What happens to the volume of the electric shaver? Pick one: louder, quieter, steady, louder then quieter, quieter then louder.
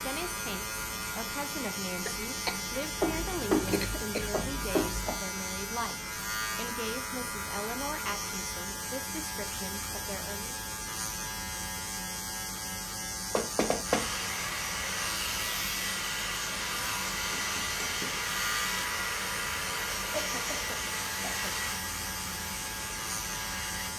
steady.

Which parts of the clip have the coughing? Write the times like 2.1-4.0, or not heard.
2.0-2.6, 3.7-4.3, 20.1-21.5.